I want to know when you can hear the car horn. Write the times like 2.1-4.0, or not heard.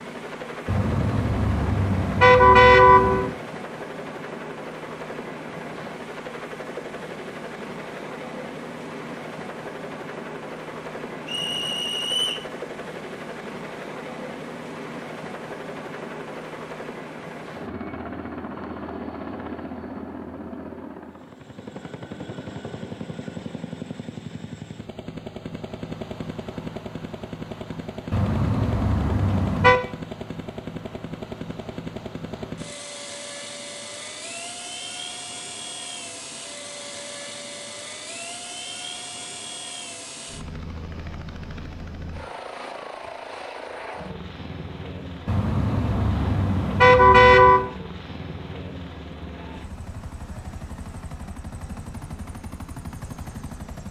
0.7-3.4, 28.1-29.8, 45.2-47.7.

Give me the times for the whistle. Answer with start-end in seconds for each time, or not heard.
11.2-12.5.